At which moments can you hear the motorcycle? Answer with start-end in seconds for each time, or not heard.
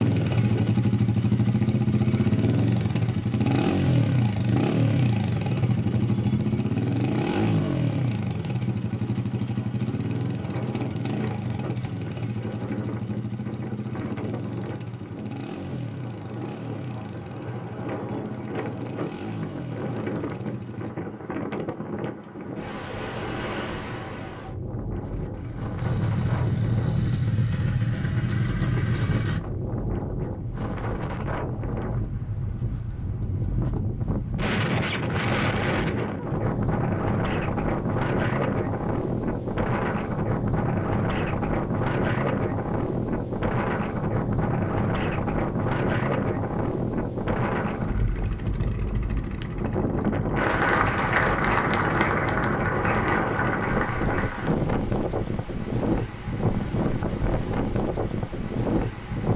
0.0-20.9, 25.0-29.4.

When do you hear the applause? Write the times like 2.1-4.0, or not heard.
50.4-54.5.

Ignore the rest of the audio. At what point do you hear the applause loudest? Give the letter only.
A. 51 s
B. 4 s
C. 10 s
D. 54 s
A.